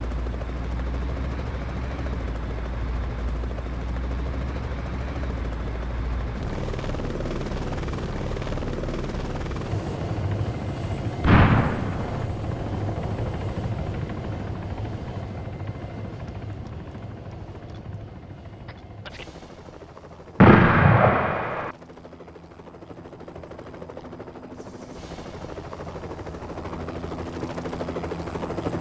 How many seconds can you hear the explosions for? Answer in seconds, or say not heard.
2 s.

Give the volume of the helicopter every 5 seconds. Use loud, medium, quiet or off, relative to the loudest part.
loud, loud, loud, medium, medium, loud.